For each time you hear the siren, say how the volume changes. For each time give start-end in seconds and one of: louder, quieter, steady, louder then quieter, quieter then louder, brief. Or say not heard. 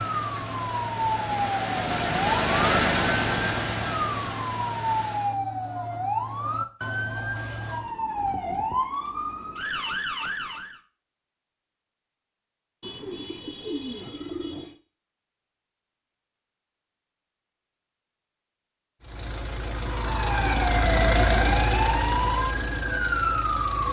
0.0-10.8 steady
19.8-23.8 steady.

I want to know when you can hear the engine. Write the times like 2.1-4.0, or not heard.
0.0-5.4, 19.0-23.8.